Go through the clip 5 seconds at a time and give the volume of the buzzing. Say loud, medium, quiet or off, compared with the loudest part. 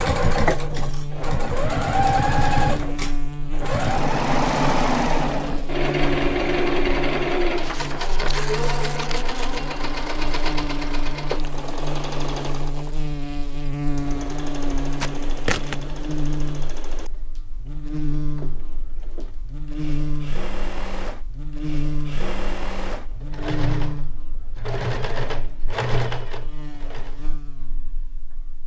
loud, loud, loud, loud, loud, quiet.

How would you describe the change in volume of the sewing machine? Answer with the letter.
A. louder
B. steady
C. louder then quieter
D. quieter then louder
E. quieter
D.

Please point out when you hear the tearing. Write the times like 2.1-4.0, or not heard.
7.6-9.6, 15.0-15.8.